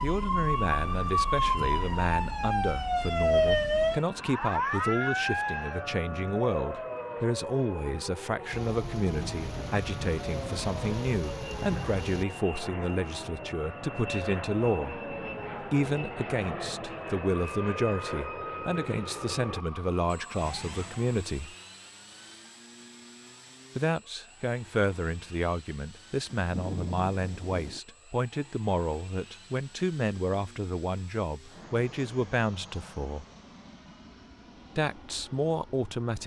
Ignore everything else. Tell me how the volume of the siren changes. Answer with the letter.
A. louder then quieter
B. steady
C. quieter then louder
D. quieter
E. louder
D.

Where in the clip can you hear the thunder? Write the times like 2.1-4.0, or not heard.
8.5-12.2, 26.4-27.8.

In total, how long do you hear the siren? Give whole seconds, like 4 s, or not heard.
21 s.